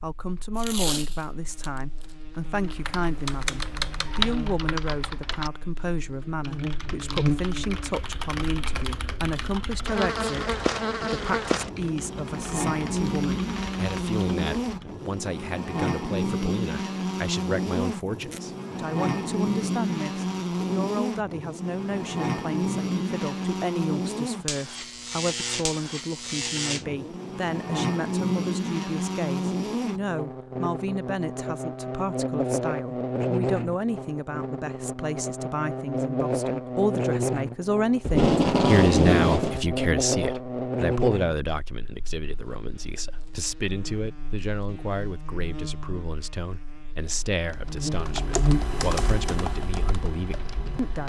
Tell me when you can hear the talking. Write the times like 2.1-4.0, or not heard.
0.0-51.0.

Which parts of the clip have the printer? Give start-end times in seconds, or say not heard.
not heard.